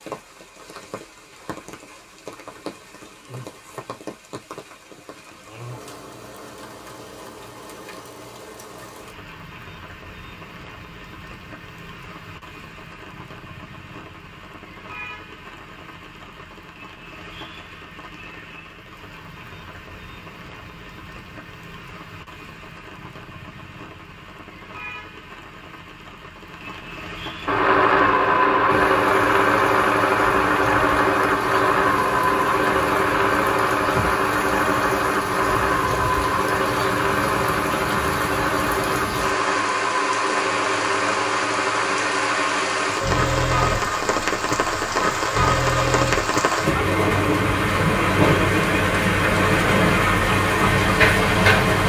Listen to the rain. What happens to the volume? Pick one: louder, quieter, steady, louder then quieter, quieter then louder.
louder.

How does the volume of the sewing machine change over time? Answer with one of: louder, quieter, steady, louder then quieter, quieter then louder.
quieter.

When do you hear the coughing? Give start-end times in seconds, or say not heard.
not heard.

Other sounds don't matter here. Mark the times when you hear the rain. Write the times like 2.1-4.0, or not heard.
0.0-51.8.